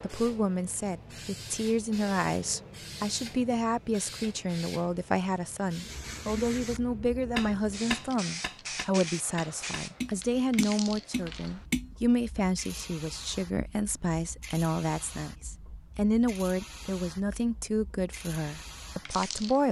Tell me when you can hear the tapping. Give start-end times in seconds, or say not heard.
7.3-12.1.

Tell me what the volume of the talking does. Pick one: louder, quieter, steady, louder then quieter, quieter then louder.
steady.